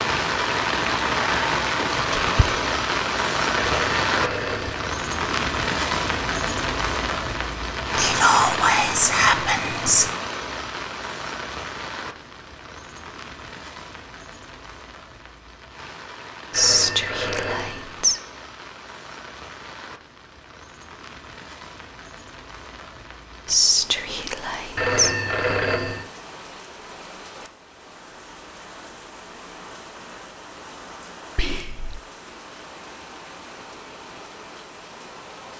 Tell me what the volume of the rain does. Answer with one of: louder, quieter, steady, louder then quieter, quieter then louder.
quieter.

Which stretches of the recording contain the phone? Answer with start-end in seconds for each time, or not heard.
3.5-4.9, 16.5-17.9, 24.8-26.1.